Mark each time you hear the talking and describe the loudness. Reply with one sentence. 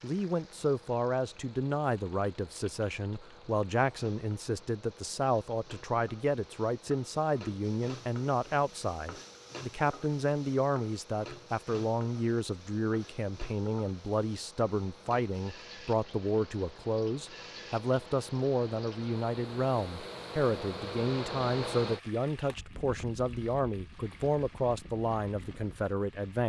You can hear the talking from 0.0 to 26.4 s, at a steady volume.